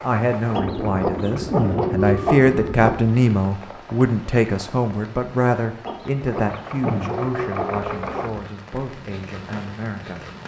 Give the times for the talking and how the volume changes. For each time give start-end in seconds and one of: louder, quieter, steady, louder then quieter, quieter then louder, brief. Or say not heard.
0.0-10.2 louder then quieter.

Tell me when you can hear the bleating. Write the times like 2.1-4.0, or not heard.
not heard.